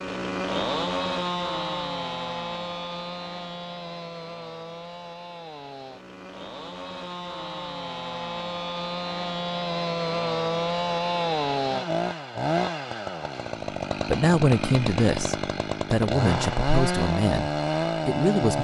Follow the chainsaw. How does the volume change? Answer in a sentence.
The volume of the chainsaw goes down, then up.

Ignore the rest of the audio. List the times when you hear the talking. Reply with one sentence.
The talking can be heard from 14.1 to 18.5 s.